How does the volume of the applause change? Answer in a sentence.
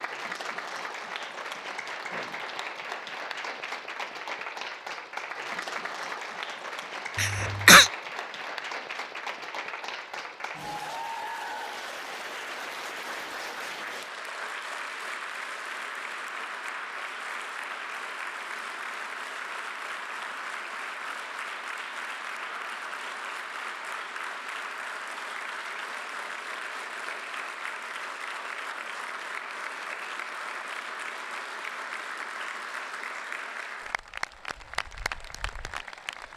The loudness of the applause stays about the same.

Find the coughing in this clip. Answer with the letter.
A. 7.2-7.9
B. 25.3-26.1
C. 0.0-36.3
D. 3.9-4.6
A.